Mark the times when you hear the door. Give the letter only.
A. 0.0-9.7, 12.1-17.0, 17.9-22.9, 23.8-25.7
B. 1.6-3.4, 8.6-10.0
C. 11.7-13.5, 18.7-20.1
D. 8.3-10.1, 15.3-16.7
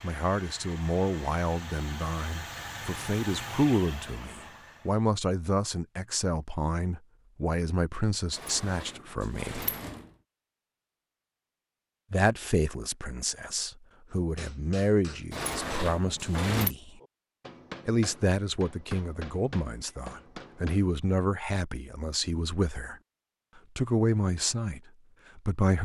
D.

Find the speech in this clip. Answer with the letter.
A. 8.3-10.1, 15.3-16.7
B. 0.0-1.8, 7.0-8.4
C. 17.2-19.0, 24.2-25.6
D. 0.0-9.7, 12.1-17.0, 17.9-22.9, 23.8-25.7
D.